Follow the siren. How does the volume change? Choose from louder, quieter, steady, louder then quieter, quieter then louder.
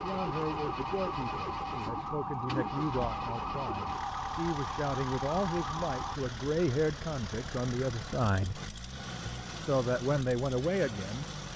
steady.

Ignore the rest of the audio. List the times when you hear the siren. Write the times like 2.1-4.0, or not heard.
0.0-6.2.